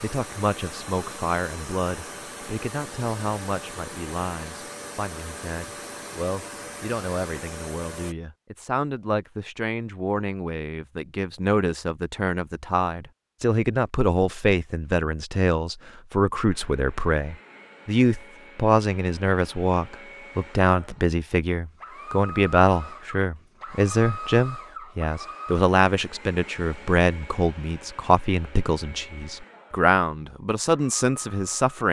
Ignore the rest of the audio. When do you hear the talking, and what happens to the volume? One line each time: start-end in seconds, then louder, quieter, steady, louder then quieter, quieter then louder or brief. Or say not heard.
0.0-31.8 louder.